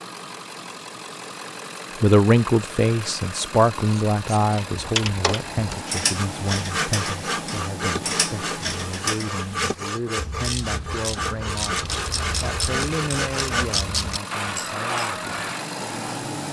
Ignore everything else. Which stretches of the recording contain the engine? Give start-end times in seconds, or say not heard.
0.0-16.4.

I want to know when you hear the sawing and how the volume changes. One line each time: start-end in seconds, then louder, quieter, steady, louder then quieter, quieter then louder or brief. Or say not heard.
6.1-15.7 steady.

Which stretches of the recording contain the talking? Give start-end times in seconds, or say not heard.
2.0-16.1.